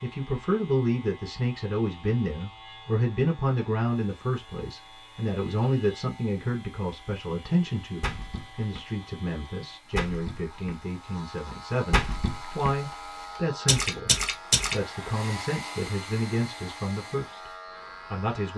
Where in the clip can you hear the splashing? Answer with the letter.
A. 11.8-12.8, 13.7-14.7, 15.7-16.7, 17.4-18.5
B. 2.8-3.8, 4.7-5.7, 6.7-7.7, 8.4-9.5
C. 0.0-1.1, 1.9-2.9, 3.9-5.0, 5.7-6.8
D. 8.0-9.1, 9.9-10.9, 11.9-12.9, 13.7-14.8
D.